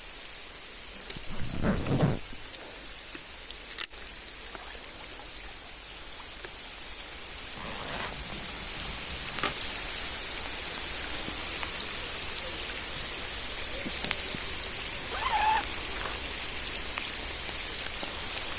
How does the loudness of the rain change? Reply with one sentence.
The loudness of the rain goes up.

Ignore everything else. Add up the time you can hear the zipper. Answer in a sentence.
The zipper can be heard for 4 seconds in total.